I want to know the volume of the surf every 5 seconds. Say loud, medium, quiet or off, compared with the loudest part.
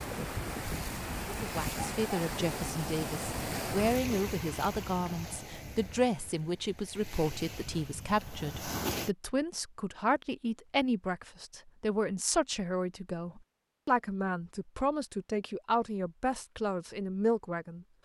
loud, medium, off, off.